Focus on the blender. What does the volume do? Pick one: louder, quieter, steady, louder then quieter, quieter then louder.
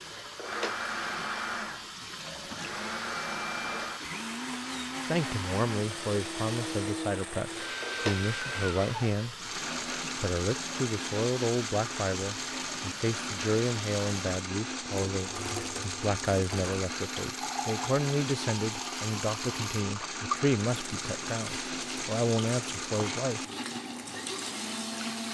steady.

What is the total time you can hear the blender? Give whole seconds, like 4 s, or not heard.
25 s.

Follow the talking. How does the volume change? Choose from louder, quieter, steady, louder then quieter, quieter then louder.
steady.